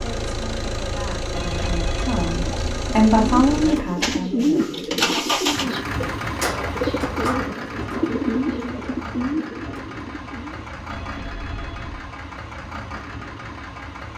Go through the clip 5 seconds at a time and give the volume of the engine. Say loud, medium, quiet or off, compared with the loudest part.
loud, loud, medium.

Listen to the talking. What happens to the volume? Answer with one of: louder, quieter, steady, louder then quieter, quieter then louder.
louder then quieter.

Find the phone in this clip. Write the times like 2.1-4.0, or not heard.
1.3-2.8, 10.9-12.0.